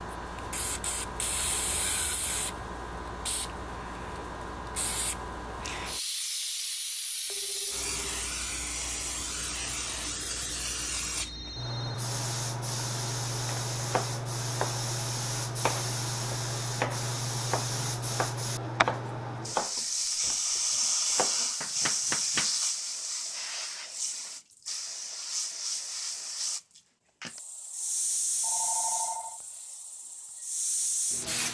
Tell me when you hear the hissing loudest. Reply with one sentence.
The volume of the hissing peaks at 21 seconds.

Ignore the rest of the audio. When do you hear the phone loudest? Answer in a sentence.
The volume of the phone peaks at 29 seconds.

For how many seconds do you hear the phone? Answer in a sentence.
The phone can be heard for 3 seconds in total.